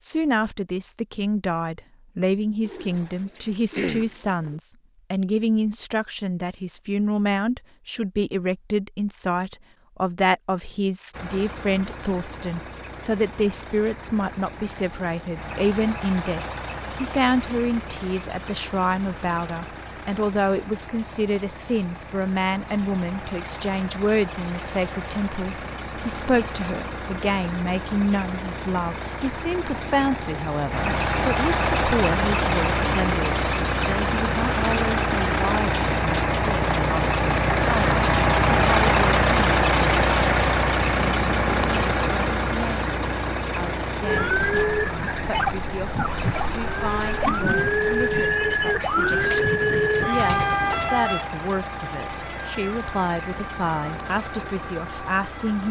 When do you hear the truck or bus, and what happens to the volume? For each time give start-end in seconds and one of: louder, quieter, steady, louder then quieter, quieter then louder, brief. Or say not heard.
11.1-55.6 louder then quieter.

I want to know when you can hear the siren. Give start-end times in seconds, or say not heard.
44.0-55.6.